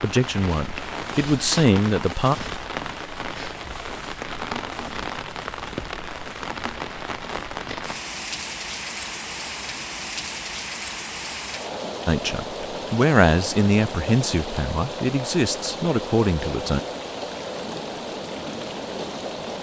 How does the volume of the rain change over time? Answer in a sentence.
The loudness of the rain stays about the same.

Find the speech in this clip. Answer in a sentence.
You can hear the speech from 0.0 to 2.4 s and from 12.1 to 16.8 s.